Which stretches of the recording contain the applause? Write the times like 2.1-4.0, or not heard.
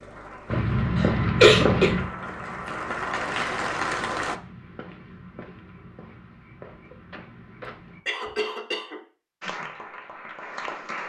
0.0-4.4, 9.4-11.0.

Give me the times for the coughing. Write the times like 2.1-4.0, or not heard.
0.9-1.9, 8.1-9.0.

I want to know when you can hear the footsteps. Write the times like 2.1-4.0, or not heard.
0.5-8.3.